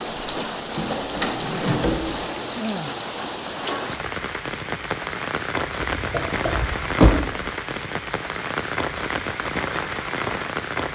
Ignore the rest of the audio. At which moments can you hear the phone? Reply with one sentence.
You can't hear the phone here.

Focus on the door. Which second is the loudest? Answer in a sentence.
The loudest moment of the door is at 7 seconds.